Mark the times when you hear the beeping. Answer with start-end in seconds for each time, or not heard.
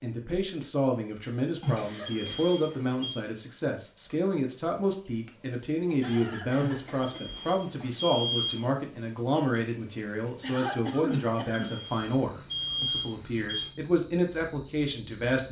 1.6-3.1, 6.5-8.7, 11.1-13.8.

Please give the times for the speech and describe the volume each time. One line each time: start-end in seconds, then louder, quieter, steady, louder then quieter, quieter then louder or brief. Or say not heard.
0.0-15.4 steady.